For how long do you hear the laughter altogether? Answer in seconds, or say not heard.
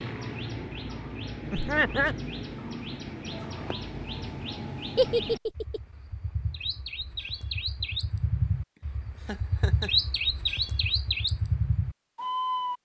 2 s.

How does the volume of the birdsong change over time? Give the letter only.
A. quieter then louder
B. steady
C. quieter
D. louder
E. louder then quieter
D.